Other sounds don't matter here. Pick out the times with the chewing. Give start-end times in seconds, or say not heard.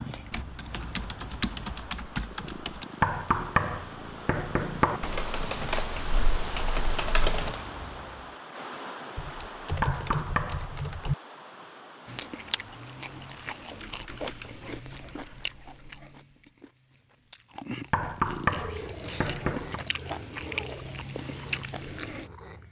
12.1-22.3.